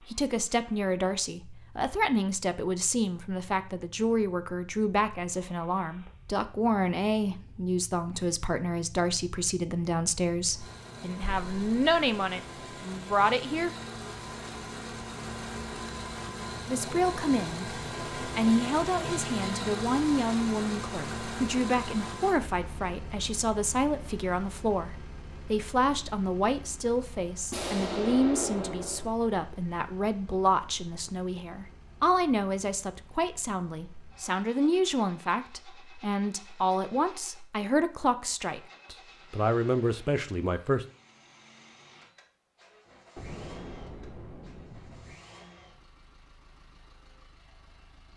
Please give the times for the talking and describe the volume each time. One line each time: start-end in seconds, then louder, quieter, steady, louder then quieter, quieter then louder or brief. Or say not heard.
0.1-13.7 steady
16.6-40.9 steady.